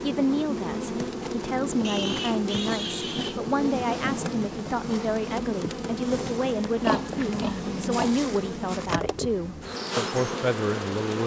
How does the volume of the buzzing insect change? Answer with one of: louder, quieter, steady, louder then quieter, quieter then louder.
steady.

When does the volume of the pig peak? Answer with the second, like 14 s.
7 s.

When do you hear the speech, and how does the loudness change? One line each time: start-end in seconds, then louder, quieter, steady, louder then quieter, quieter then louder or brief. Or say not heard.
0.0-11.2 steady.